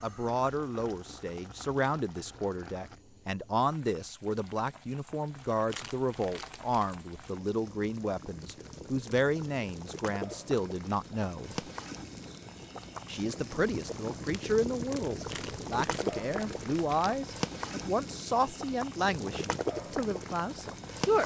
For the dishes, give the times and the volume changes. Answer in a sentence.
You can't hear the dishes here.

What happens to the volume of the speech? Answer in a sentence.
The volume of the speech stays about the same.